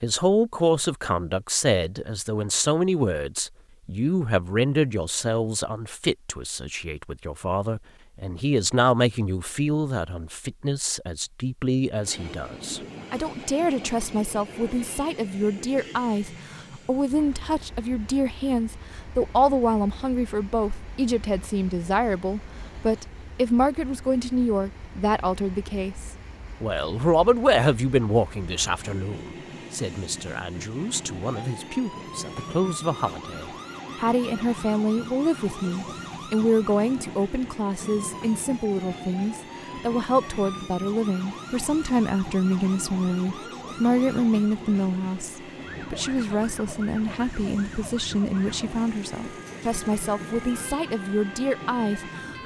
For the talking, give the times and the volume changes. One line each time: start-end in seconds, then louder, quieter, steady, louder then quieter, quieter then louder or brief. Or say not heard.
0.0-52.4 steady.